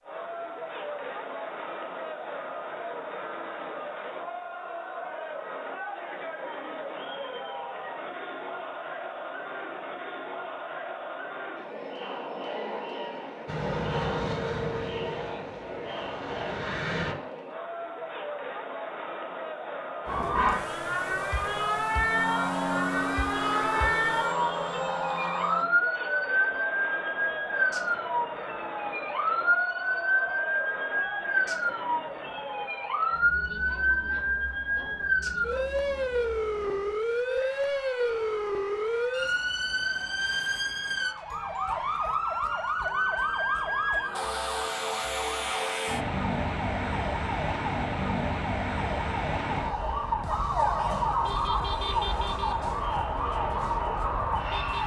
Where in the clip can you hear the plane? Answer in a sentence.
You can hear the plane from 13.4 to 17.1 s and from 21.4 to 25.6 s.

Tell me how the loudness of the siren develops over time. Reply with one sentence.
The volume of the siren stays about the same.